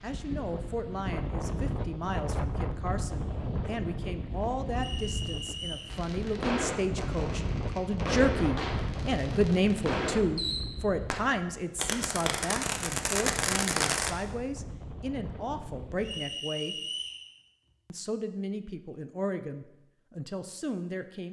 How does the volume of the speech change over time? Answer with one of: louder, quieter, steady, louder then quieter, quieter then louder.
louder then quieter.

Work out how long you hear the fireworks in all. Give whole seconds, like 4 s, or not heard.
8 s.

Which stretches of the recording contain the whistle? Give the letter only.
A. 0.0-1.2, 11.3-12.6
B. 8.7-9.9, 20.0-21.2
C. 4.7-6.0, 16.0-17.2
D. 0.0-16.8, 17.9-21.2
C.